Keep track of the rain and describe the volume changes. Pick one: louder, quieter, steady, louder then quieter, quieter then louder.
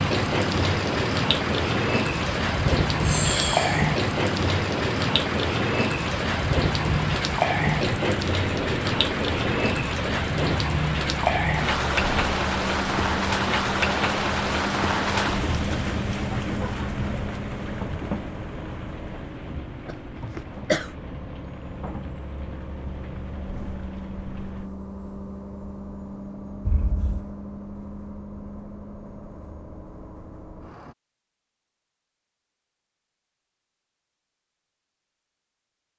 quieter.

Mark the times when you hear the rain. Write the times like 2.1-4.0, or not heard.
0.0-24.7.